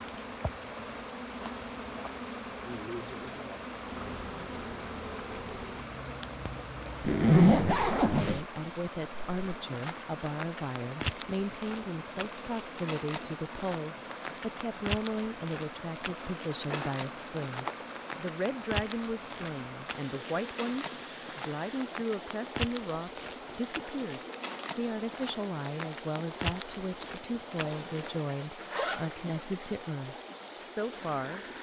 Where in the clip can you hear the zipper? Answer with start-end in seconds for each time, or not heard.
7.0-8.4, 16.7-17.9, 27.9-29.4.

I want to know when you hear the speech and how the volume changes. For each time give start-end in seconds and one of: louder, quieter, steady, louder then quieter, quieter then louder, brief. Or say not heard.
8.2-31.4 steady.